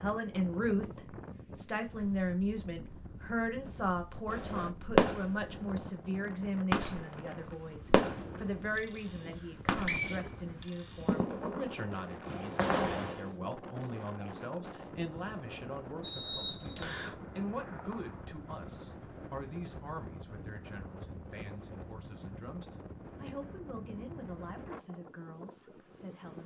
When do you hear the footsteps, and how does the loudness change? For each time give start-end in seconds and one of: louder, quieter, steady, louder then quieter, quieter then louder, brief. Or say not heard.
not heard.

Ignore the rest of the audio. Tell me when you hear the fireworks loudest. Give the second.
5 s.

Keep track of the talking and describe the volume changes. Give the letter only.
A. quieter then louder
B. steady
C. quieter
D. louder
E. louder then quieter
C.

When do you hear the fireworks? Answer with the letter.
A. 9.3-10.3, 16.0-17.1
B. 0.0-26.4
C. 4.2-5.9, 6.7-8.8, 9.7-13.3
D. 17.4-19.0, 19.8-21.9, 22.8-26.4
C.